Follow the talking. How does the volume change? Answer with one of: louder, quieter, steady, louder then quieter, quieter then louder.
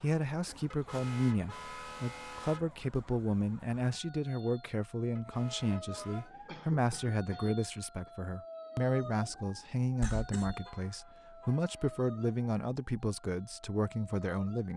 steady.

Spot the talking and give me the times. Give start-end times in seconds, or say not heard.
0.0-14.7.